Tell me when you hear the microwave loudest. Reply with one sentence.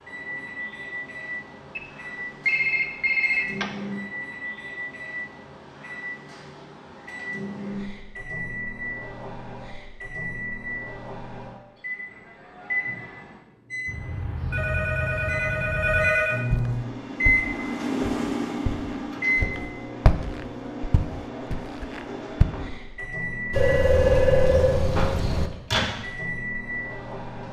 The volume of the microwave peaks at 18 seconds.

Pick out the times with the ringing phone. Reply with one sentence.
You can hear the ringing phone from 2.5 to 3.7 s, from 13.8 to 16.4 s and from 23.5 to 25.5 s.